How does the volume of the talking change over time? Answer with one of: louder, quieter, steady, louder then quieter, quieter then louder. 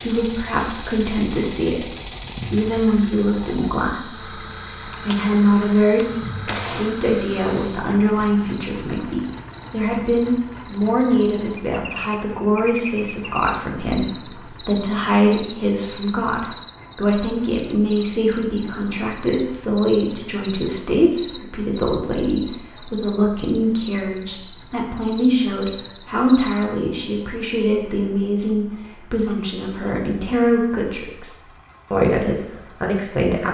steady.